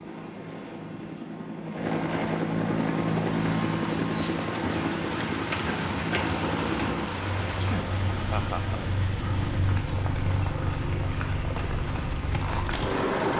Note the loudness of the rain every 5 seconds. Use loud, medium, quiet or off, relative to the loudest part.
loud, loud, medium.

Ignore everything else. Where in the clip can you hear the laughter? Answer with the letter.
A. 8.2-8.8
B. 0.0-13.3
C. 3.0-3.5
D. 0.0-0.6
A.